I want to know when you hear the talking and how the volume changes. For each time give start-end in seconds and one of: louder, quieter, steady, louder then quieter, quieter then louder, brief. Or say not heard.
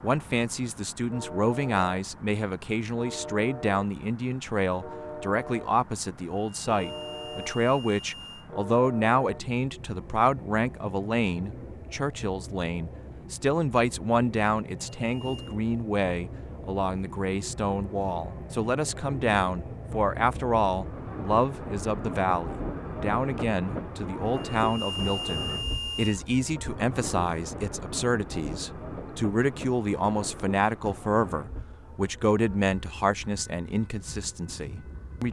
0.0-35.2 steady.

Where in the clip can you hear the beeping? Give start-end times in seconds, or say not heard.
6.6-8.5, 15.0-15.6, 24.3-26.2.